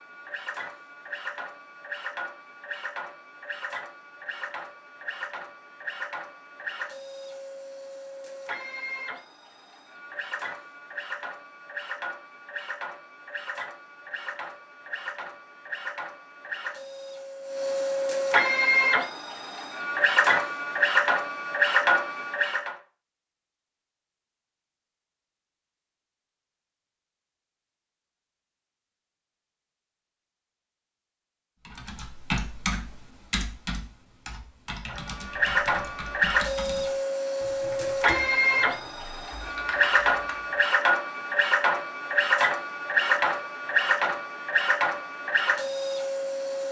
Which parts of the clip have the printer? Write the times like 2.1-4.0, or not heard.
0.0-22.8, 34.9-46.6.